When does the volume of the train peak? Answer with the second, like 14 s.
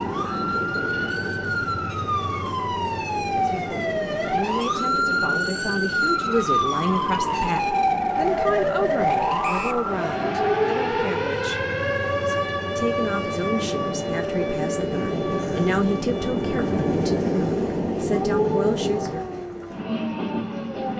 17 s.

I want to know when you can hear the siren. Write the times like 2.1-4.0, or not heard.
0.0-20.9.